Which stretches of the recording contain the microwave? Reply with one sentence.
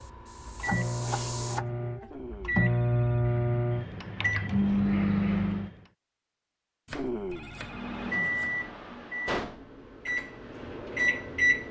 The microwave can be heard from 0.0 to 5.8 s and from 7.6 to 11.6 s.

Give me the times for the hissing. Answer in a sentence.
The hissing can be heard from 0.0 to 1.6 s.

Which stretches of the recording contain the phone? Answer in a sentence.
You can hear the phone from 2.0 to 3.2 s and from 6.9 to 8.1 s.